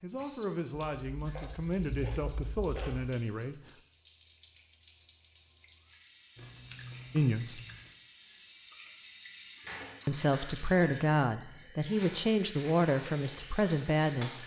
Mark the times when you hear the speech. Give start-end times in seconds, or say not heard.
0.0-3.5, 7.1-7.6, 10.1-14.4.